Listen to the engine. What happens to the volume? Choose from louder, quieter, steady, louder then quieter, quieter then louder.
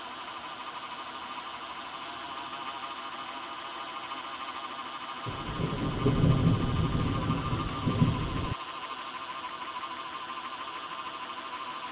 steady.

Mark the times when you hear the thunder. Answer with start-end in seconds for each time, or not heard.
5.2-8.6.